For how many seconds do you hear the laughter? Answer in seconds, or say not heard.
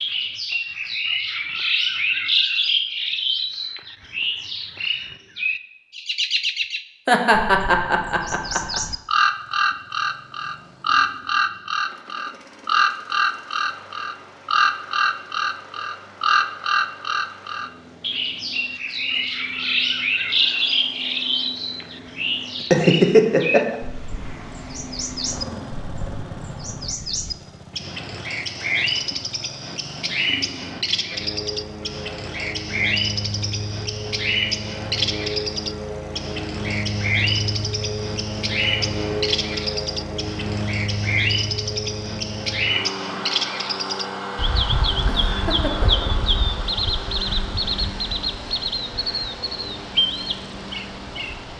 4 s.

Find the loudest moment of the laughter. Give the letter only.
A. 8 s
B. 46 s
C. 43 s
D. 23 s
D.